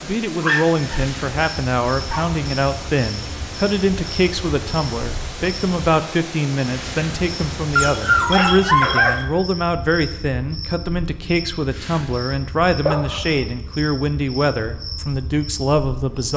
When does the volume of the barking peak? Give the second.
9 s.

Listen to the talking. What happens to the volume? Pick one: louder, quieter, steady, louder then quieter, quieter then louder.
steady.